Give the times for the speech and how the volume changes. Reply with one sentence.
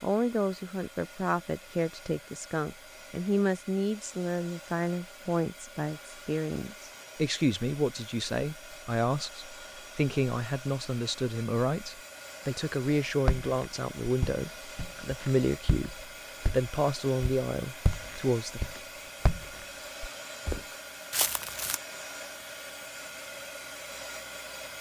The speech can be heard from 0.0 to 18.6 s, at a steady volume.